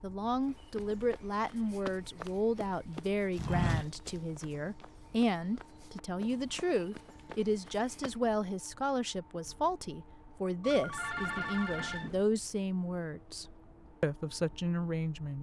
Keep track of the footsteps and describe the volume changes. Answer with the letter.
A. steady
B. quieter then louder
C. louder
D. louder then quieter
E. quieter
D.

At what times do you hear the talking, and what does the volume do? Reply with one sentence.
The talking can be heard from 0.0 to 15.3 s, at a steady volume.